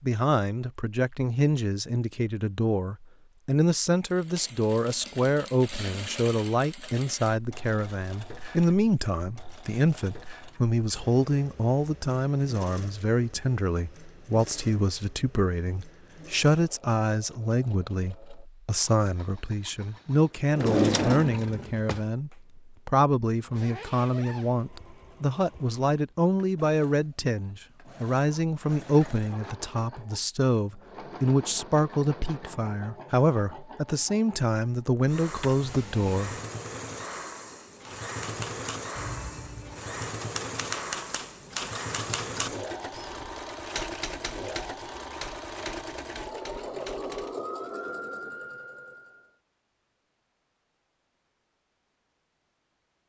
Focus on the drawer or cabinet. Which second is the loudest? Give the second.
21 s.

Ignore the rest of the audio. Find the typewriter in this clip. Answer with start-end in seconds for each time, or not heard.
37.8-47.4.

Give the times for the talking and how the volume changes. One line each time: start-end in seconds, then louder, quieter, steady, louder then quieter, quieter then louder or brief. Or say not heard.
0.0-36.3 steady.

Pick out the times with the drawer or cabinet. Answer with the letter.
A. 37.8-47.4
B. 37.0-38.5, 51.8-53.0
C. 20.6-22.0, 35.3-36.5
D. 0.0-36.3
C.